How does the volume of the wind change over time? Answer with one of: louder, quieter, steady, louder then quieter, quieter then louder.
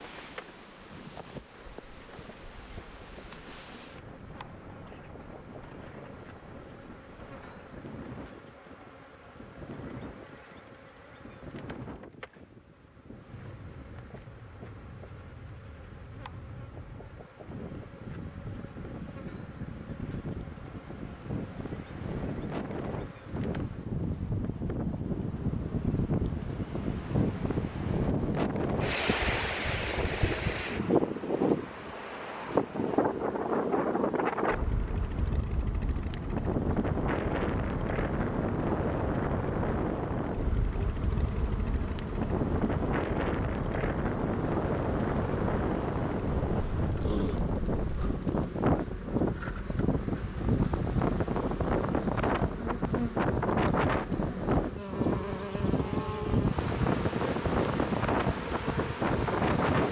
louder.